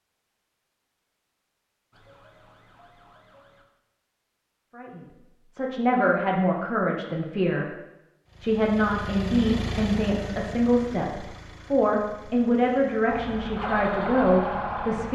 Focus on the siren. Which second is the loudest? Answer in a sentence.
The volume of the siren peaks at 14 seconds.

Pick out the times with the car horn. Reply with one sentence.
The car horn can't be heard in this clip.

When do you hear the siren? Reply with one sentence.
The siren can be heard from 1.9 to 3.6 s and from 13.1 to 15.1 s.